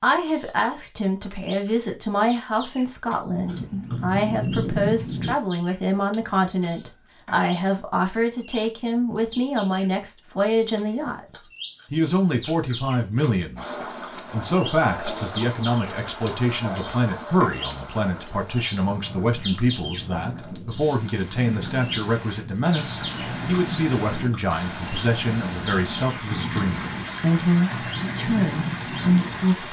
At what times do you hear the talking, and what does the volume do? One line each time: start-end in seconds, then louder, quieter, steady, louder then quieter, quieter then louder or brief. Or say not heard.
0.0-29.6 steady.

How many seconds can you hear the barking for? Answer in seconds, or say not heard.
not heard.